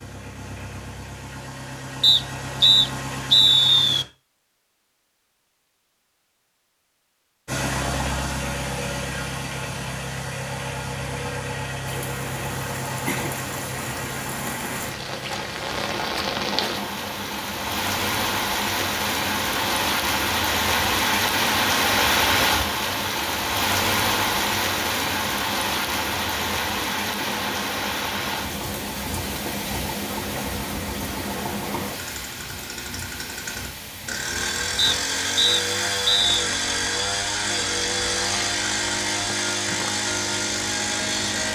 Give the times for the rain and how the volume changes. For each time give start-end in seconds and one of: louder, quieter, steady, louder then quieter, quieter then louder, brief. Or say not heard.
11.8-41.5 louder then quieter.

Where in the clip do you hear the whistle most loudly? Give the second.
3 s.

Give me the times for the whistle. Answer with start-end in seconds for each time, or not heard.
2.0-4.0, 34.8-36.2.